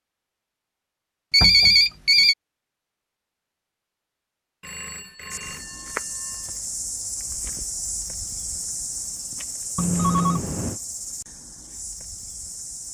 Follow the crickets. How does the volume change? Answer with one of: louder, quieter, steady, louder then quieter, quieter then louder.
quieter.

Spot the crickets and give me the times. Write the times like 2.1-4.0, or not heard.
5.3-12.8.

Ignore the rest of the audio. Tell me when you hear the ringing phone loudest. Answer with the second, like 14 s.
2 s.